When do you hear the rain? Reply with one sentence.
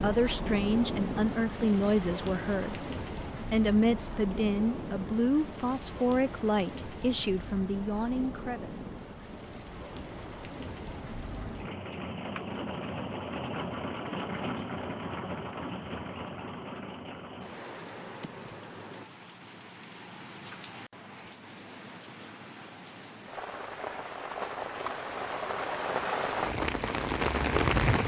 You can hear the rain from 0.0 to 28.0 s.